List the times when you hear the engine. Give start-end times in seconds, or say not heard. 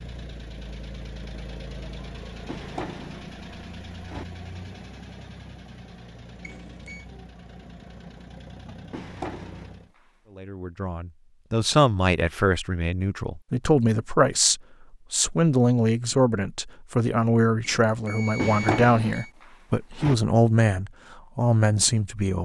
0.0-9.9.